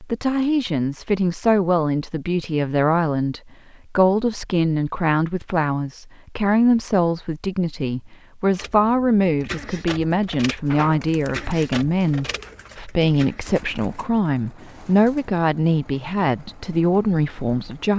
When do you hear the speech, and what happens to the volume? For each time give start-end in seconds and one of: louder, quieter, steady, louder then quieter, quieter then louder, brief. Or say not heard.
0.0-17.9 steady.